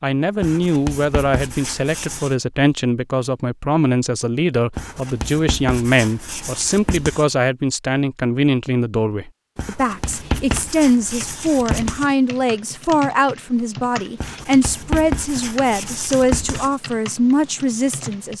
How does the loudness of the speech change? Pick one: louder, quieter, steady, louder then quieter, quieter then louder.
steady.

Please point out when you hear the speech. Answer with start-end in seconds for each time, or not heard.
0.0-18.3.